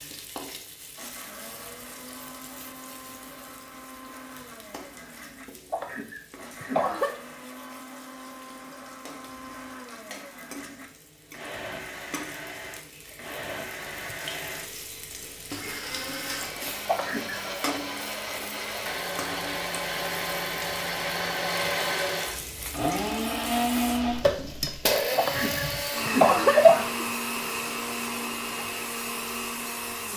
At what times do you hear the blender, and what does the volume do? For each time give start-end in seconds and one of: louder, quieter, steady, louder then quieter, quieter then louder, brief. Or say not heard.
0.0-30.1 louder.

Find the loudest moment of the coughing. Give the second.
27 s.